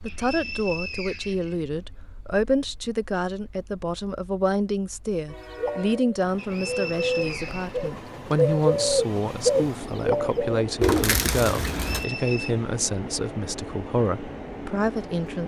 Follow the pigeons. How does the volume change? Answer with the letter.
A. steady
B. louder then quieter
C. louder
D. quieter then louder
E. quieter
C.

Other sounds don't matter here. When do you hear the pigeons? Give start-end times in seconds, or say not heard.
5.5-12.1.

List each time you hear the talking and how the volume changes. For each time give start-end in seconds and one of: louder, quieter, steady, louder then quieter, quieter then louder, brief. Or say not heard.
0.0-15.4 steady.